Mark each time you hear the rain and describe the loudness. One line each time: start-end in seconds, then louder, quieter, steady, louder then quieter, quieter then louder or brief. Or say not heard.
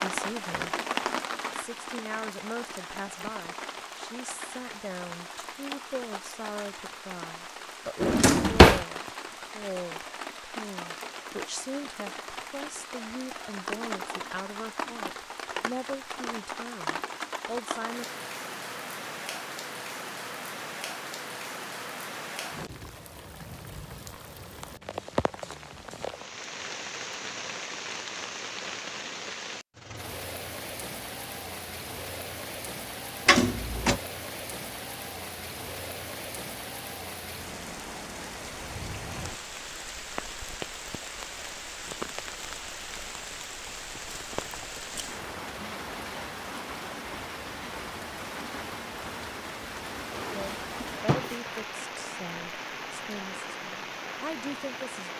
0.0-55.1 steady.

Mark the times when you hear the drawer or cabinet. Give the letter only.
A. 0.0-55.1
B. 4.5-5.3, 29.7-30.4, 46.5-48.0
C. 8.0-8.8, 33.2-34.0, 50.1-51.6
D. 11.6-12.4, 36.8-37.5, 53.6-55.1
C.